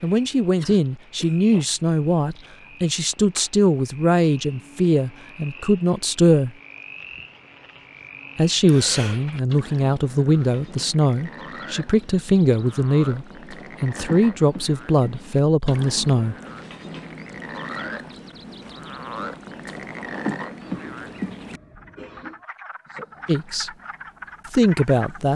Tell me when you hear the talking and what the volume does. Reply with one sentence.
You can hear the talking from 0.0 to 6.5 s, at a steady volume; from 8.3 to 16.4 s, at a steady volume; briefly from 23.2 to 23.7 s; and briefly from 24.5 to 25.3 s.